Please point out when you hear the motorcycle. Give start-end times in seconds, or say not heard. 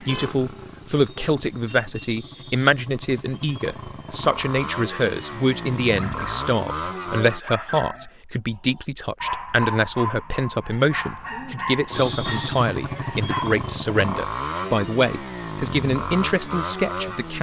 0.0-7.4, 11.9-17.3.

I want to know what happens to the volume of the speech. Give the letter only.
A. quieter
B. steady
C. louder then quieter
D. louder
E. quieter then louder
B.